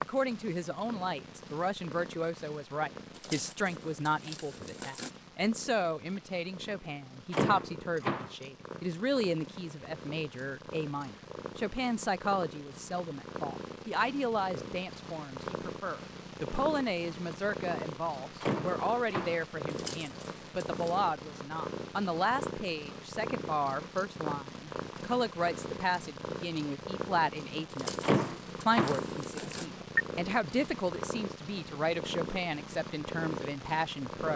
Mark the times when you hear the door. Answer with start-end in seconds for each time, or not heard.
7.3-8.3, 18.4-19.4, 28.0-30.1.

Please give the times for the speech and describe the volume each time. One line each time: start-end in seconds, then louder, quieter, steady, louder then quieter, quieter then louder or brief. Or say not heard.
0.0-34.3 steady.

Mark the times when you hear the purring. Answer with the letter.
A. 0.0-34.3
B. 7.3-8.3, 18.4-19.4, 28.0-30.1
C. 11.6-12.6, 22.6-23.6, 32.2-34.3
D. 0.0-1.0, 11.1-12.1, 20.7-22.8
A.